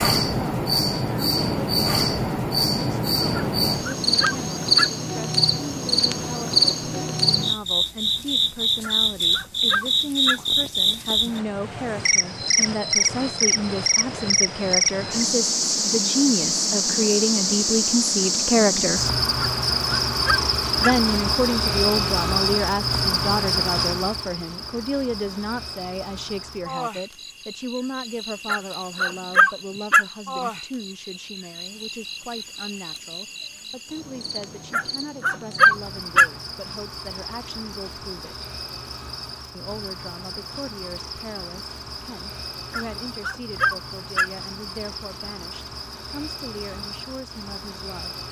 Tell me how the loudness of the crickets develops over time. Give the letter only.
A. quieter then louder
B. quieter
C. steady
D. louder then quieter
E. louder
B.